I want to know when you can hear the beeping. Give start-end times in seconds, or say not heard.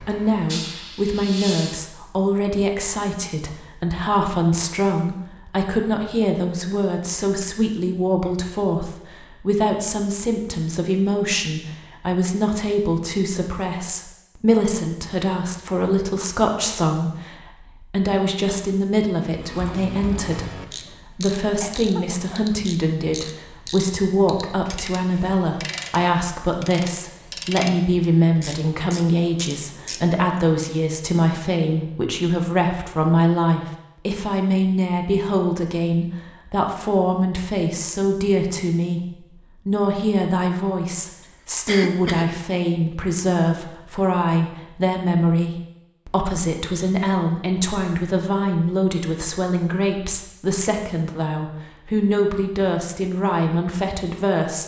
not heard.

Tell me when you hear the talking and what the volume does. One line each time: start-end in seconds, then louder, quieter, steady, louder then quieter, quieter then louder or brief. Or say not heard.
0.0-54.6 steady.